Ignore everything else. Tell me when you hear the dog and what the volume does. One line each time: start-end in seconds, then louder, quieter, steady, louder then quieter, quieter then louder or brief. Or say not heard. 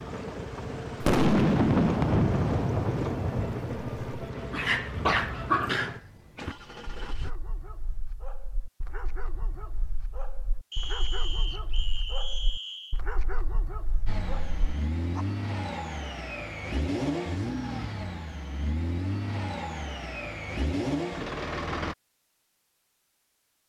4.3-15.2 quieter then louder.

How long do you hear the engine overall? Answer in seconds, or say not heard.
15 s.